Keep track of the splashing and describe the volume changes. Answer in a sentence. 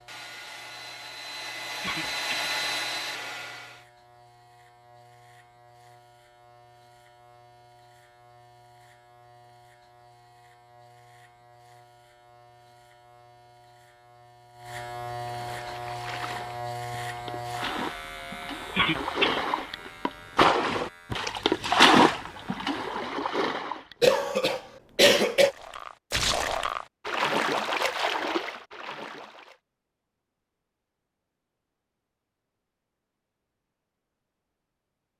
The volume of the splashing goes up, then down.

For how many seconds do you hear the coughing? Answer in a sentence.
You can hear the coughing for 3 seconds altogether.